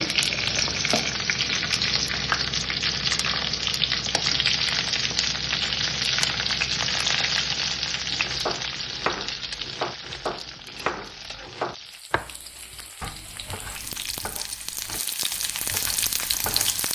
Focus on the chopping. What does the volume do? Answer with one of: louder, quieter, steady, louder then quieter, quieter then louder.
quieter.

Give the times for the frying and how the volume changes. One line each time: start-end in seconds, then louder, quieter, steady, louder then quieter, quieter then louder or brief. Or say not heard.
0.0-16.9 quieter then louder.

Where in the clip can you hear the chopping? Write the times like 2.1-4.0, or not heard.
8.1-16.9.